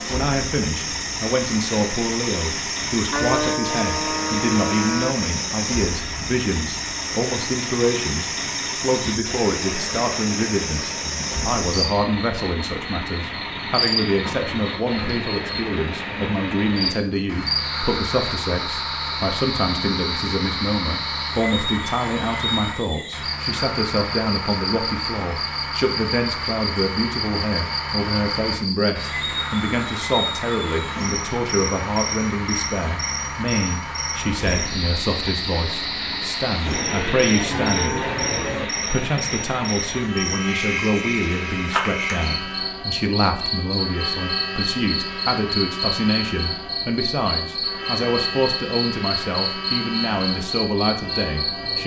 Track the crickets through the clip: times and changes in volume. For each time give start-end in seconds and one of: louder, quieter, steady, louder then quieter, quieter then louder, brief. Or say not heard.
0.0-51.8 steady.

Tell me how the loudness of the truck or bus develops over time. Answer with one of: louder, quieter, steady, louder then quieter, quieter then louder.
steady.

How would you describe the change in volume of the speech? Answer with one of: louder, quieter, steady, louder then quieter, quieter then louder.
steady.